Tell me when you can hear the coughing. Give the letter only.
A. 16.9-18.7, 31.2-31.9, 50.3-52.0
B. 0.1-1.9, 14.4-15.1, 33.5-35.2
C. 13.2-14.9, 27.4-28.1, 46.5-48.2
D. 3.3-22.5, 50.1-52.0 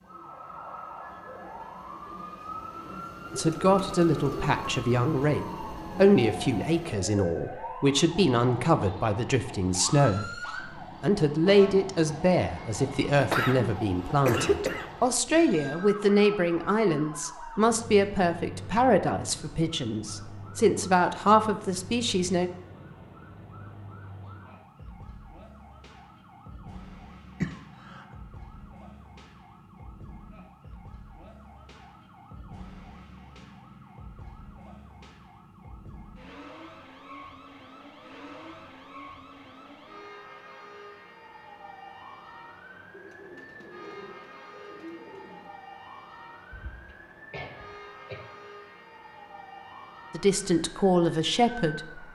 C.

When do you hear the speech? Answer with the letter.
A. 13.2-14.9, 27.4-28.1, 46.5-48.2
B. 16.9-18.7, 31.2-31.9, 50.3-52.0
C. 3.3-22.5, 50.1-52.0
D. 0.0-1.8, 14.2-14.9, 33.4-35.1
C.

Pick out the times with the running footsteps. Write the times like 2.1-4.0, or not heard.
not heard.